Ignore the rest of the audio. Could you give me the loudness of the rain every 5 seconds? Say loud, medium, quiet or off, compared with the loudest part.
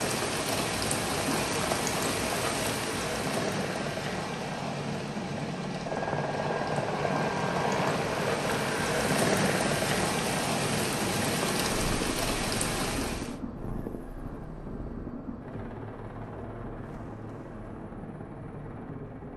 loud, loud, loud, off.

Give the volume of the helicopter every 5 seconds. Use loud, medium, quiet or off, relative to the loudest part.
medium, loud, medium, medium.